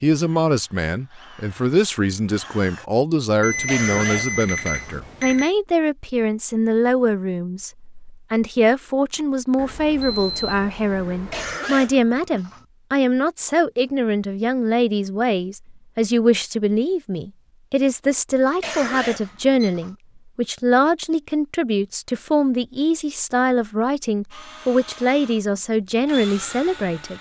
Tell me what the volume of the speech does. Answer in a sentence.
The loudness of the speech stays about the same.